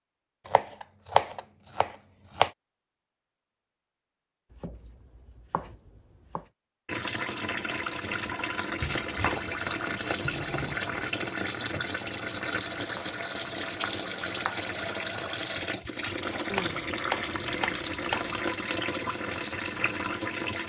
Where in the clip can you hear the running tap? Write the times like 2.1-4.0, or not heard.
6.8-20.6.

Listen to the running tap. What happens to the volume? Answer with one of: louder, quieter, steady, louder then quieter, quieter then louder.
steady.